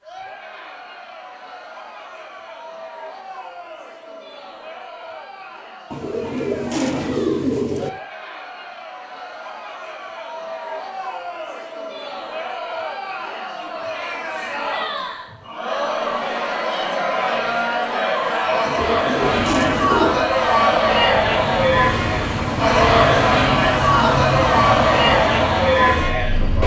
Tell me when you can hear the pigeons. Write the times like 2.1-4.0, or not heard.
5.9-7.9, 18.6-20.3.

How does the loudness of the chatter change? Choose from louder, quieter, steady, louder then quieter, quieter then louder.
louder.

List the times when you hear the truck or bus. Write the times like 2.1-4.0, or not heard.
19.2-26.6.